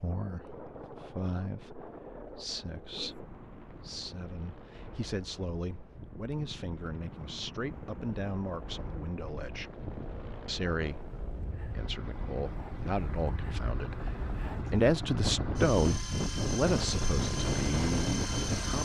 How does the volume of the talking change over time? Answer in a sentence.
The loudness of the talking goes up.